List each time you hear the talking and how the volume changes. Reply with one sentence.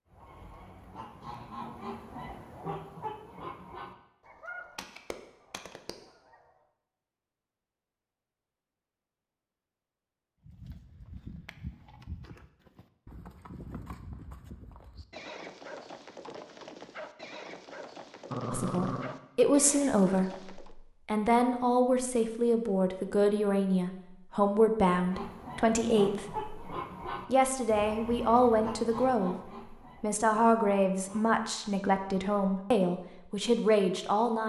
You can hear the talking from 18.5 to 34.4 s, at a steady volume.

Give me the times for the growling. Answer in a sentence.
The growling can be heard from 18.3 to 19.2 s.